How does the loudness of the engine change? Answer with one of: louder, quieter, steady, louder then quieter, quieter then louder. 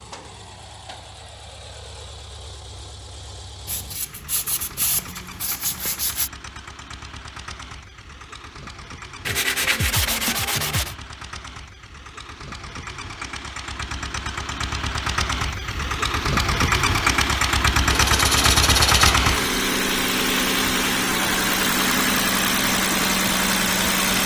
louder.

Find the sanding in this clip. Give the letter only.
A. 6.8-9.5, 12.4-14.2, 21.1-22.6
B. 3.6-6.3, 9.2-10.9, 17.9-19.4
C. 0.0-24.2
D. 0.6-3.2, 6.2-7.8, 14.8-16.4
B.